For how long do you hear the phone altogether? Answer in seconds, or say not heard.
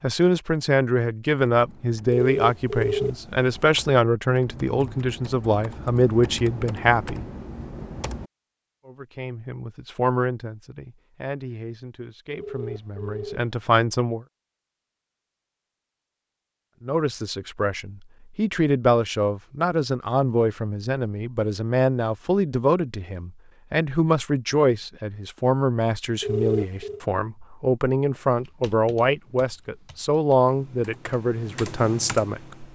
3 s.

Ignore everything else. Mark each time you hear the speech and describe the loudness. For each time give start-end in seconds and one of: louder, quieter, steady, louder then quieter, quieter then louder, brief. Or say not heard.
0.0-7.2 steady
8.8-14.2 quieter then louder
16.8-32.6 steady.